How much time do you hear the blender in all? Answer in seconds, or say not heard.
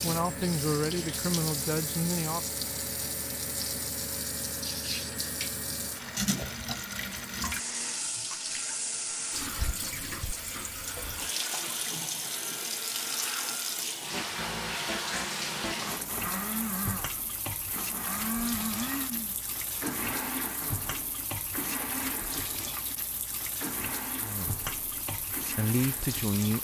26 s.